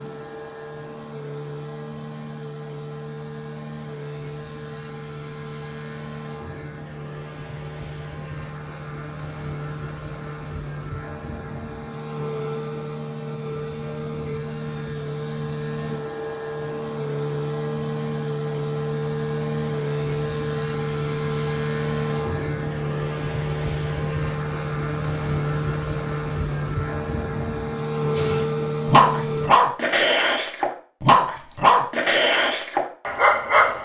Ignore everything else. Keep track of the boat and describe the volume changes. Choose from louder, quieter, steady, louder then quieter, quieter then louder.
louder.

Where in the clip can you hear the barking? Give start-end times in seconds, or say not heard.
28.1-33.8.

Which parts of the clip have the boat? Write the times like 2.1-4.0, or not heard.
0.0-29.5.